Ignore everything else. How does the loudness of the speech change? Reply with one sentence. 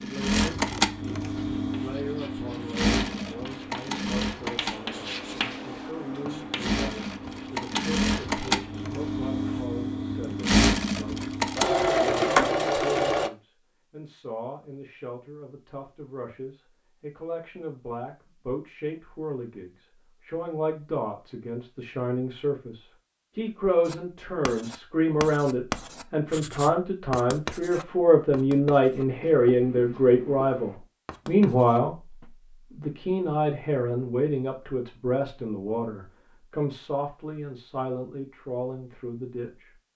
The volume of the speech goes up, then down.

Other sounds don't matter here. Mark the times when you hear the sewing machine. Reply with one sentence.
You can hear the sewing machine from 0.0 to 13.3 s.